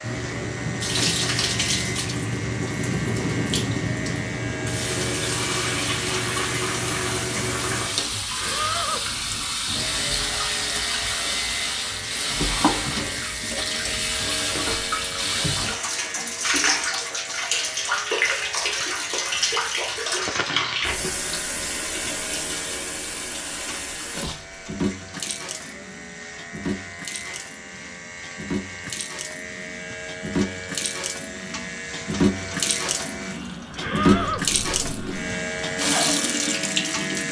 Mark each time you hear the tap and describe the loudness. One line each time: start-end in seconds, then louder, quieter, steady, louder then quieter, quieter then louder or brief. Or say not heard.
0.0-37.2 quieter then louder.